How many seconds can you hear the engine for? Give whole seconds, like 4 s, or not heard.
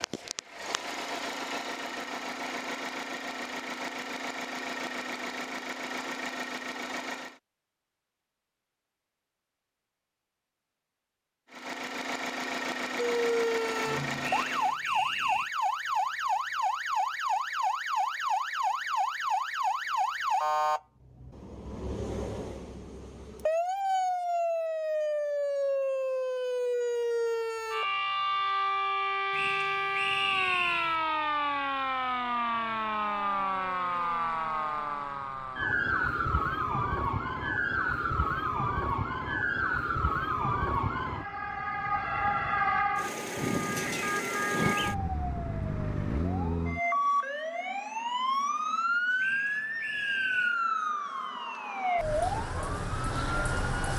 11 s.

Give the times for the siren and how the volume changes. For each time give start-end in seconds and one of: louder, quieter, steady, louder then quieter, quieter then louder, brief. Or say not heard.
12.9-53.9 steady.